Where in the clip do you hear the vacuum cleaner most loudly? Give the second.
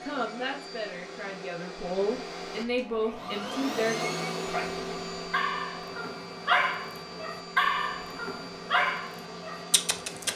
4 s.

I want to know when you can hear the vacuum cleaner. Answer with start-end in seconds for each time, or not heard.
0.0-10.3.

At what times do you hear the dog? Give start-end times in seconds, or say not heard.
4.4-10.3.